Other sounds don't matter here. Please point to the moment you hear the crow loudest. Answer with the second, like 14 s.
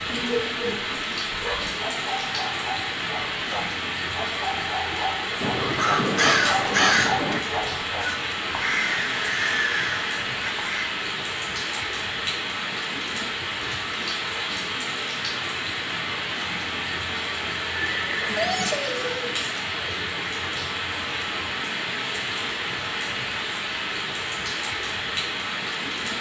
7 s.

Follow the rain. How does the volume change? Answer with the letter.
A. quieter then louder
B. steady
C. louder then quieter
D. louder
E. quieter
B.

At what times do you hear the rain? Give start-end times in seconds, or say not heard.
0.0-26.1.